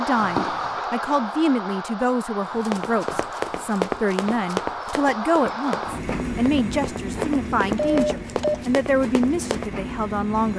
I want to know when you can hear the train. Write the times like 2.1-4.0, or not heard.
0.0-10.5.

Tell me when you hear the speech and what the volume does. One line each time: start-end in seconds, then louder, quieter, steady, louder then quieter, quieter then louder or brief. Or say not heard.
0.0-10.5 steady.